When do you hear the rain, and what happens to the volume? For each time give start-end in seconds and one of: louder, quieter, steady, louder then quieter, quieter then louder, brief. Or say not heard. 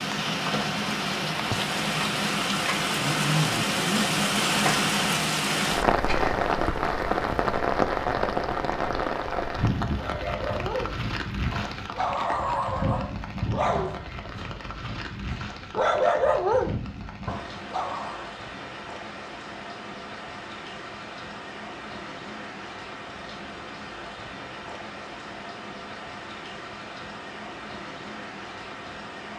0.0-29.3 quieter.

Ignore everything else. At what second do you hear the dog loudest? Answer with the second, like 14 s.
16 s.